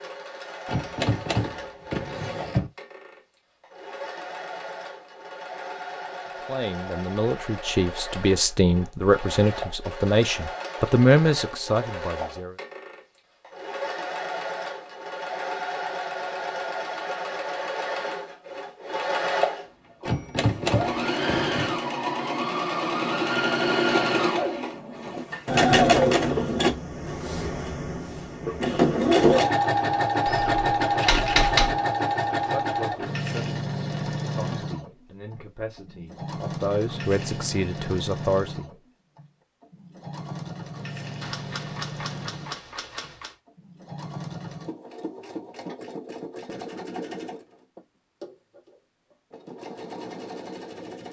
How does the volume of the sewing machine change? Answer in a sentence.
The loudness of the sewing machine goes up, then down.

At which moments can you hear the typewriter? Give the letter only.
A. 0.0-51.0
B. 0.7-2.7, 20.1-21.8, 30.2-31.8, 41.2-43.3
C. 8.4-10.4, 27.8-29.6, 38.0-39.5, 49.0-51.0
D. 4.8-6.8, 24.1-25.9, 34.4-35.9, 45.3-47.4
B.